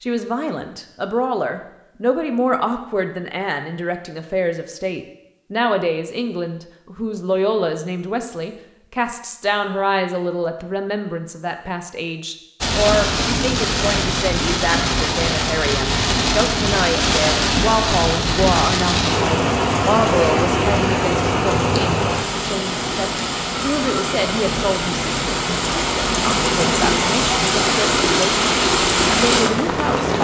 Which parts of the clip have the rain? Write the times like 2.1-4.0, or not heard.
12.6-30.1.